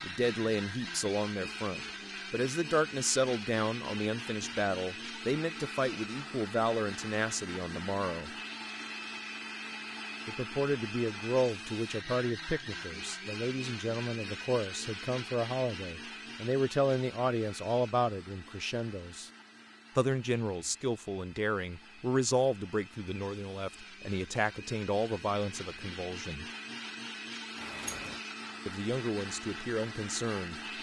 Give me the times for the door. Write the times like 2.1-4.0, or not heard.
27.6-28.2.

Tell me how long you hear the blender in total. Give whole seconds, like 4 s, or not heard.
31 s.